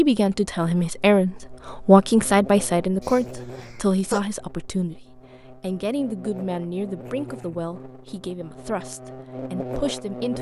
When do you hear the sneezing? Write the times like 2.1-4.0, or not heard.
3.0-4.2.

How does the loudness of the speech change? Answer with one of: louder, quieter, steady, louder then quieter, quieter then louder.
quieter.